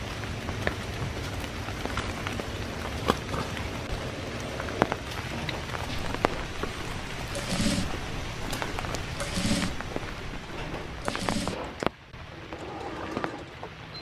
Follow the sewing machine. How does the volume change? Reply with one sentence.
The volume of the sewing machine goes up.